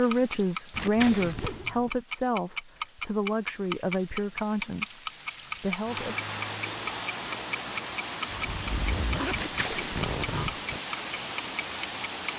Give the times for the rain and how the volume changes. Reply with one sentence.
The rain can be heard from 0.0 to 12.3 s, getting louder.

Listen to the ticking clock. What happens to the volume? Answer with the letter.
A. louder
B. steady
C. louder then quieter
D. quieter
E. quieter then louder
D.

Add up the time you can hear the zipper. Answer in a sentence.
The zipper can be heard for 3 seconds in total.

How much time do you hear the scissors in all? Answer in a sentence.
The scissors can be heard for 3 seconds in total.